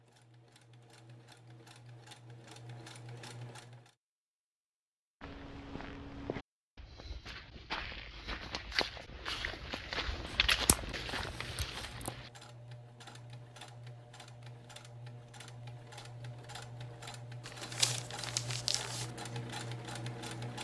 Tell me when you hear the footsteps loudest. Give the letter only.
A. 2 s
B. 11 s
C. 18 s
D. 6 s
B.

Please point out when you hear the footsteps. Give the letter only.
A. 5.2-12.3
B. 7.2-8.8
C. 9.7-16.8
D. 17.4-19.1
A.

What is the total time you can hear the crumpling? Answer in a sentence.
You can hear the crumpling for 2 seconds altogether.